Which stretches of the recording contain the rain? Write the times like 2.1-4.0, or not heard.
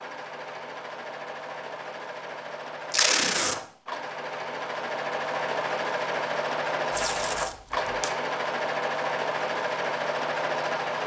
not heard.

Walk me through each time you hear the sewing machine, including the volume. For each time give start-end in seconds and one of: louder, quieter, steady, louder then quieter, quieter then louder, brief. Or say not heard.
0.0-11.0 louder.